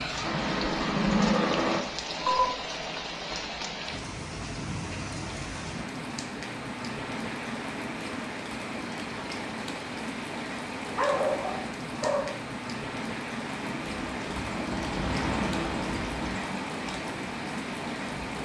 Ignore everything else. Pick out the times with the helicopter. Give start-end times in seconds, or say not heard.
0.0-1.8, 13.6-18.4.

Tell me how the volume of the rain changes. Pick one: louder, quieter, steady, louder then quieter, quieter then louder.
steady.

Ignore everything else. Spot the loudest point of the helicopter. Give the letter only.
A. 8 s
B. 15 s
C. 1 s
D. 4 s
C.